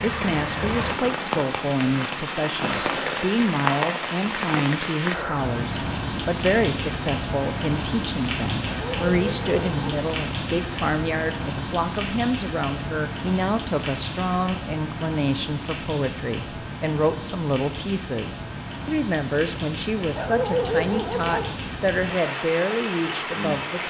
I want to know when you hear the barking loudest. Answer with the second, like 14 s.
21 s.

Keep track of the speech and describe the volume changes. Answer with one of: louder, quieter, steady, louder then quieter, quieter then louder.
steady.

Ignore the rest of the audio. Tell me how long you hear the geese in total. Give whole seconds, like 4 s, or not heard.
not heard.